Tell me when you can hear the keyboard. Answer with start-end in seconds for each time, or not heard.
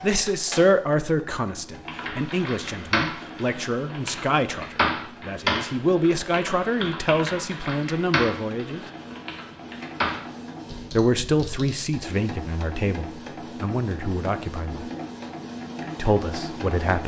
1.9-11.9.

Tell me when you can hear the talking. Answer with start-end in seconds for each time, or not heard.
0.0-8.8, 10.9-14.8, 15.9-17.0.